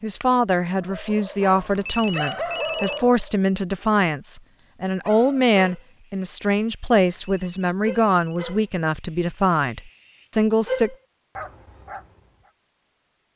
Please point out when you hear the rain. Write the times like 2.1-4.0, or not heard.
not heard.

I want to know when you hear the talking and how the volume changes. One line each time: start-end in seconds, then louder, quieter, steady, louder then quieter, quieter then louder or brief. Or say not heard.
0.0-10.9 steady.